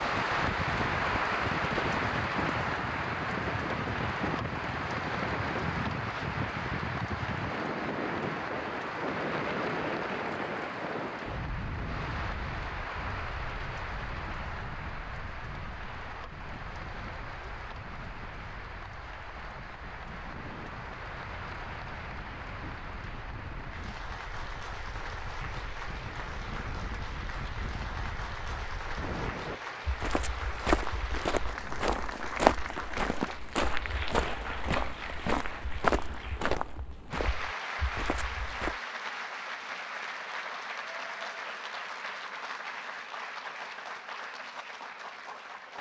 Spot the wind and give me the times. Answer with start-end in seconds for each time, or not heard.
0.0-29.6.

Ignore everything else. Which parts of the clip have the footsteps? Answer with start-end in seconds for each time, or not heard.
29.9-38.8.